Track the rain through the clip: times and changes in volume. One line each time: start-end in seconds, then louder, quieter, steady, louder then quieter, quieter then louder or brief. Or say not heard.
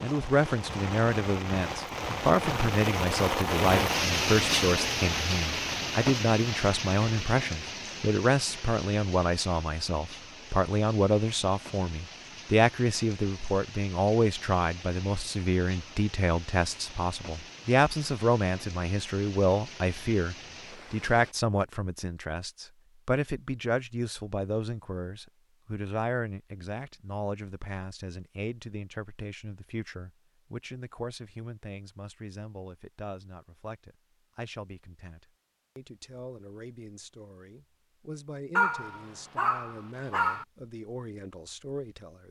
0.0-21.4 quieter.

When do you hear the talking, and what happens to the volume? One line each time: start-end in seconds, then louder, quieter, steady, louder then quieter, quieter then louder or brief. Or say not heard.
0.0-42.2 quieter.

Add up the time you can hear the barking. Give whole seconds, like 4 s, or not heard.
2 s.